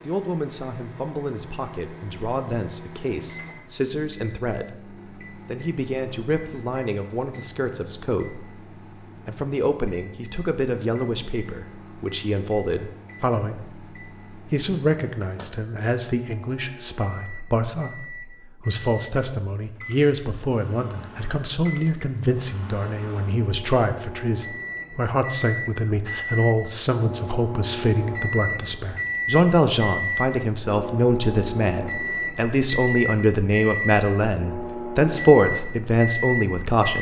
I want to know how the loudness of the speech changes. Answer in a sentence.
The loudness of the speech goes up.